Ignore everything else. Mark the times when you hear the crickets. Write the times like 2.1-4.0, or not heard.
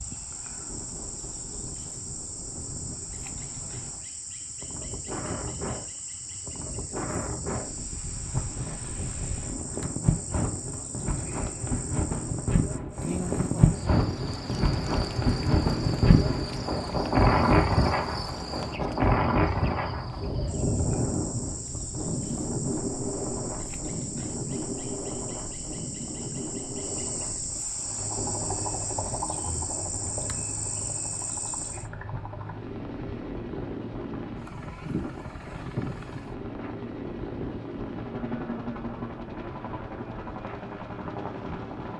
0.0-31.9.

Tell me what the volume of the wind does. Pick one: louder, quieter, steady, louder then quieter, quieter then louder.
louder then quieter.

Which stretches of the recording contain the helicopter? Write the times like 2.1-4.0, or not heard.
27.8-41.9.